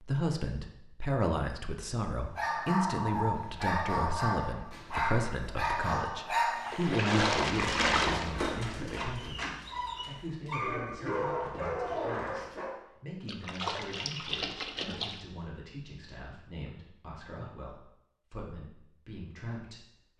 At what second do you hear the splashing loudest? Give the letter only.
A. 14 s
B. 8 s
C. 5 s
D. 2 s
B.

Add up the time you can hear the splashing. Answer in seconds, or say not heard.
4 s.